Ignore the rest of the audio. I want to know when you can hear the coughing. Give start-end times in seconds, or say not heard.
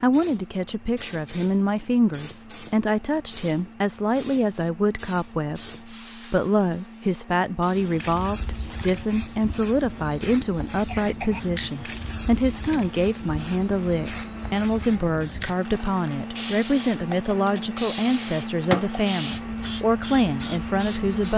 10.8-11.4.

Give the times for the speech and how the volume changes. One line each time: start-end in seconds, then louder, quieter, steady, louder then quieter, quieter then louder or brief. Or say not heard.
0.0-21.3 steady.